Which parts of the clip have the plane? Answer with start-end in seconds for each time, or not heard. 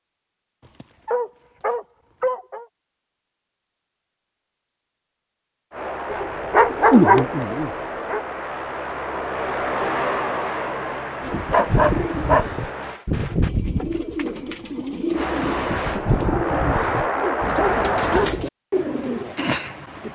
5.7-13.0, 15.1-18.2.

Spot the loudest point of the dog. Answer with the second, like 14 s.
7 s.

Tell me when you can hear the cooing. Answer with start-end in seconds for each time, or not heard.
11.2-20.1.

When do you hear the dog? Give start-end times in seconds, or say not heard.
0.7-2.6, 6.1-8.2, 11.5-13.5, 17.1-18.4.